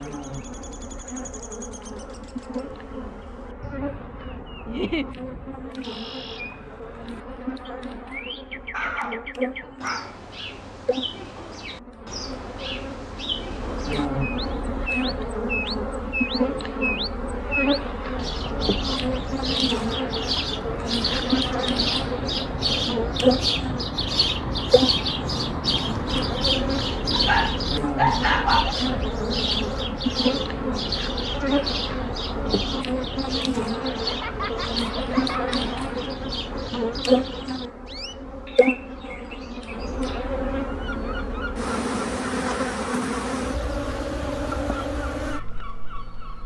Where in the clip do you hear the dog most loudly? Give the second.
28 s.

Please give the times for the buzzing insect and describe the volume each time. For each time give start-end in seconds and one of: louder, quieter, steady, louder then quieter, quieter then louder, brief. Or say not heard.
0.0-46.4 louder.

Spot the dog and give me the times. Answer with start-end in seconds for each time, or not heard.
8.7-10.2, 27.1-28.8.